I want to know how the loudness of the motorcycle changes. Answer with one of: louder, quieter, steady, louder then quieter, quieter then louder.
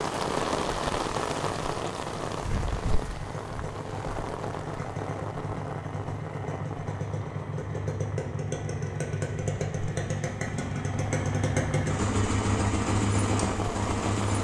louder.